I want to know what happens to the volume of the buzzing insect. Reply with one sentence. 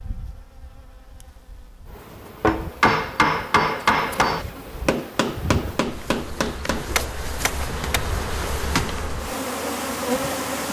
The volume of the buzzing insect goes up.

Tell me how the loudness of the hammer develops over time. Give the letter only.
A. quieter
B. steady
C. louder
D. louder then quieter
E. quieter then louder
A.